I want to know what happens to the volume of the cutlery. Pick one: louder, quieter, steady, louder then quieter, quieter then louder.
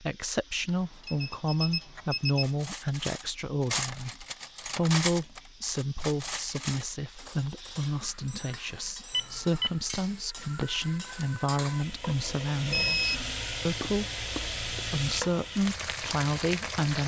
quieter.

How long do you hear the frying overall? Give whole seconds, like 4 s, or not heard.
17 s.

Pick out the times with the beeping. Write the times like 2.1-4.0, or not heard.
0.7-2.6, 9.1-9.8, 12.7-13.4.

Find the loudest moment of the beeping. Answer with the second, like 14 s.
13 s.